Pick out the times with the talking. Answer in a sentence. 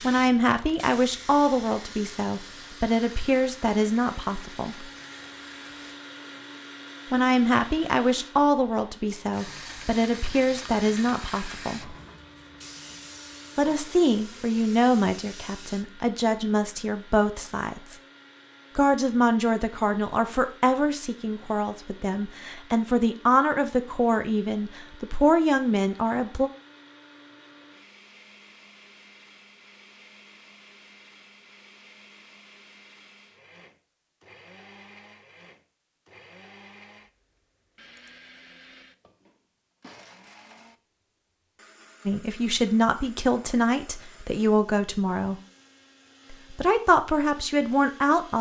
The talking can be heard from 0.0 to 4.8 s, from 7.1 to 11.9 s, from 13.6 to 18.0 s, from 18.8 to 26.5 s, from 42.0 to 45.4 s and from 46.3 to 48.3 s.